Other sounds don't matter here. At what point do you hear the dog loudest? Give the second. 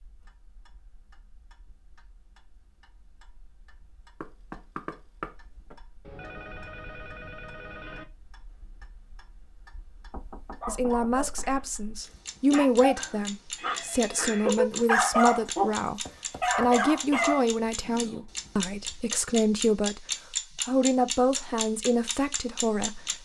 15 s.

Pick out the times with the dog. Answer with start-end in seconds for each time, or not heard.
10.6-11.7, 12.4-18.2.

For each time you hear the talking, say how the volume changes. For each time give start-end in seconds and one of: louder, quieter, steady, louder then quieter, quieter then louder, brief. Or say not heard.
10.7-23.2 steady.